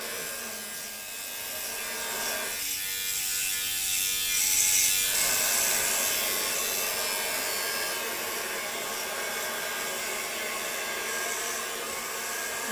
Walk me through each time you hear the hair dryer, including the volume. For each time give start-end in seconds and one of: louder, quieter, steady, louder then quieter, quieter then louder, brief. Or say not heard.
0.0-2.6 brief
5.0-12.6 steady.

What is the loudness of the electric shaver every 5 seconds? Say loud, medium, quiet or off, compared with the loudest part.
loud, loud, medium.